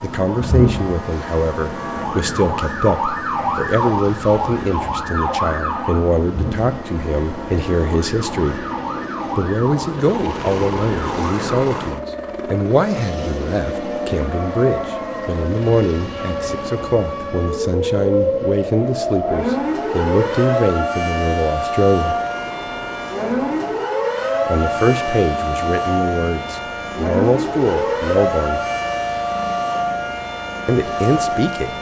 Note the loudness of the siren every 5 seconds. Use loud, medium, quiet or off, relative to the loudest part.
loud, medium, medium, loud, loud, loud, loud.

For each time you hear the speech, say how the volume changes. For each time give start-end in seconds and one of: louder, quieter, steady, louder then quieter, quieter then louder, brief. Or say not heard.
0.0-8.6 steady
9.3-22.1 steady
24.4-28.6 quieter then louder
30.6-31.7 brief.